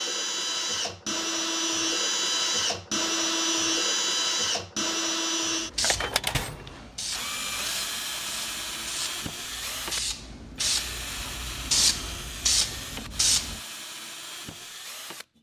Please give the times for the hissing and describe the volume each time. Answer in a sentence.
You can hear the hissing from 5.7 to 13.6 s, getting louder.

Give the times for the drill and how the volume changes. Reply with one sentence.
You can hear the drill from 0.0 to 15.3 s, getting quieter.